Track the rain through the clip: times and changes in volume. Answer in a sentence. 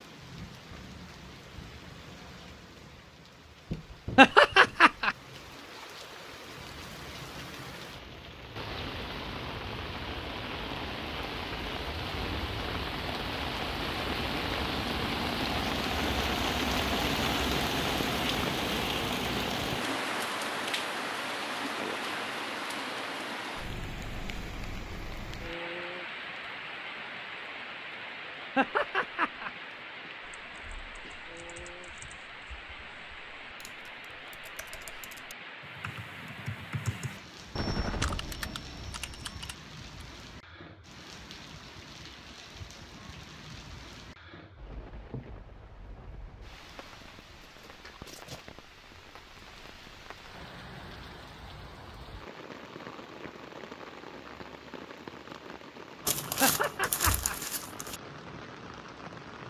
The rain can be heard from 0.0 to 59.4 s, getting louder then quieter.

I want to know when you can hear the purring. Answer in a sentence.
You can't hear the purring here.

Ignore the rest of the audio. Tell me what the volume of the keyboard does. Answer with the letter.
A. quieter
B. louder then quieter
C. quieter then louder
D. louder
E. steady
D.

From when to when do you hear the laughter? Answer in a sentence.
You can hear the laughter from 4.2 to 5.2 s, from 28.6 to 29.5 s and from 56.4 to 57.4 s.